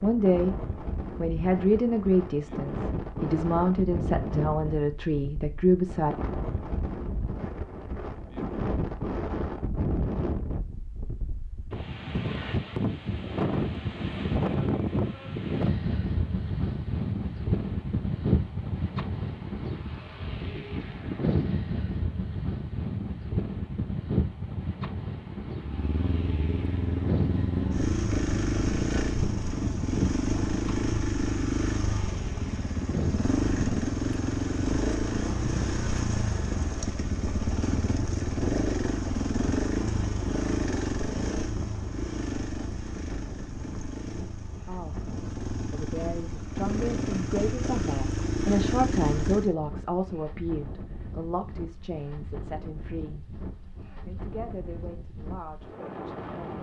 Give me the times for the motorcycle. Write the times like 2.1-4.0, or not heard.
25.6-49.5.